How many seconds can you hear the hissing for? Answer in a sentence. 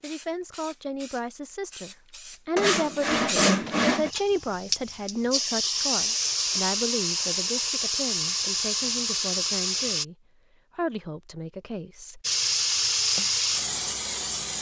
The hissing can be heard for 12 seconds in total.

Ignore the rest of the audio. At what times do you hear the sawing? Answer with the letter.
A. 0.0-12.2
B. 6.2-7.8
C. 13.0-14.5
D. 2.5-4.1
D.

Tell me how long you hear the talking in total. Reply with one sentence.
The talking can be heard for 12 seconds in total.